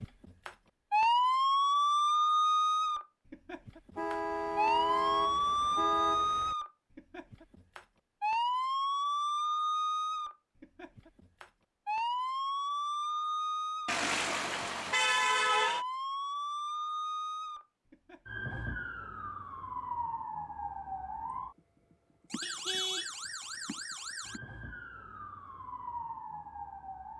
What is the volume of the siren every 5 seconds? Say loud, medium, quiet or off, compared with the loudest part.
loud, loud, medium, medium, quiet, quiet.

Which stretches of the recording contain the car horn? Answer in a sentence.
You can hear the car horn from 4.0 to 6.5 s, from 13.8 to 15.8 s and from 22.4 to 23.1 s.